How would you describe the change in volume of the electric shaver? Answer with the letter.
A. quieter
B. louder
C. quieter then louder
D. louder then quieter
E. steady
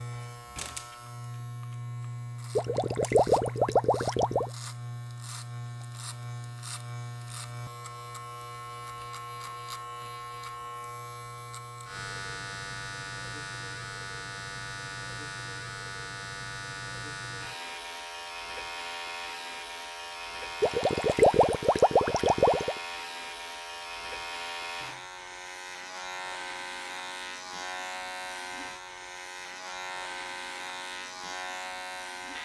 E.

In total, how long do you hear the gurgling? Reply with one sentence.
The gurgling can be heard for 4 seconds in total.